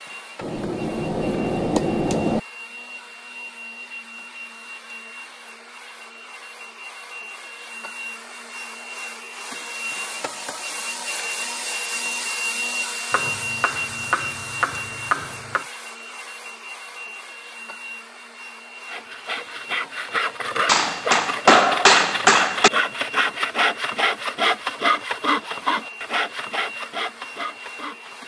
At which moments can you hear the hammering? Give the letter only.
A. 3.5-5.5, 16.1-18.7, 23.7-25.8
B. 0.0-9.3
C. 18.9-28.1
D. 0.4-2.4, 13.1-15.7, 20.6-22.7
D.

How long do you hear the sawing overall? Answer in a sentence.
The sawing can be heard for 9 seconds in total.